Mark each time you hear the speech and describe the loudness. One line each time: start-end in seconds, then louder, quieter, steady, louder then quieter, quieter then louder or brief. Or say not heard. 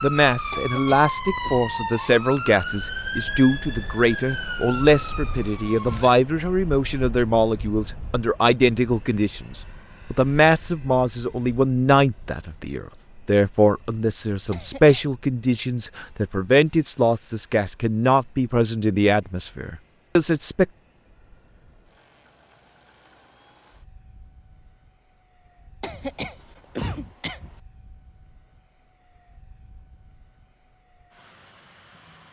0.0-20.6 steady.